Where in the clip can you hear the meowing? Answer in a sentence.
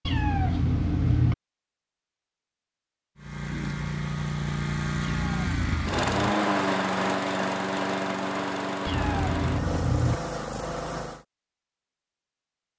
The meowing can be heard from 0.1 to 1.4 s, from 5.0 to 6.3 s and from 8.8 to 10.2 s.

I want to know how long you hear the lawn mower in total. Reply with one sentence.
You can hear the lawn mower for 8 seconds altogether.